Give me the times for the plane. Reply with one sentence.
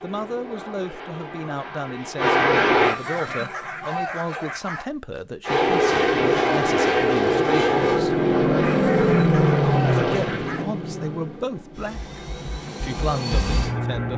You can hear the plane from 0.0 to 3.0 s and from 5.4 to 14.1 s.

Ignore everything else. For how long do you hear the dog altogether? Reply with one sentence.
You can hear the dog for 4 seconds altogether.